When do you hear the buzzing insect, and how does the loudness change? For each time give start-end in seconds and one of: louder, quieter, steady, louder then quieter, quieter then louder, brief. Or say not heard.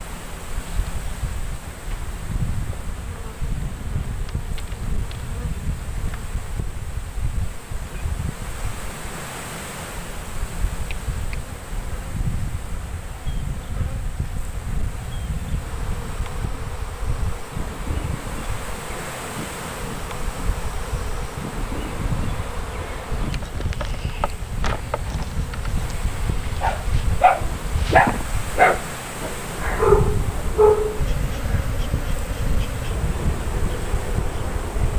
0.0-34.9 louder.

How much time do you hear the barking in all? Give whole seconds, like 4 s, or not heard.
5 s.